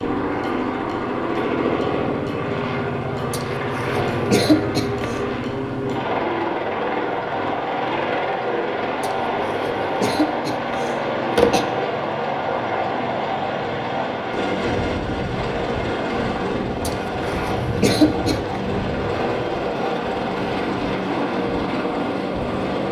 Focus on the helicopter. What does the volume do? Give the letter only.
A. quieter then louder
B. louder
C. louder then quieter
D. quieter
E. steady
E.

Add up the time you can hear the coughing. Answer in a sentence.
You can hear the coughing for 6 seconds altogether.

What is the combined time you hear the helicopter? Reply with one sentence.
You can hear the helicopter for 23 seconds altogether.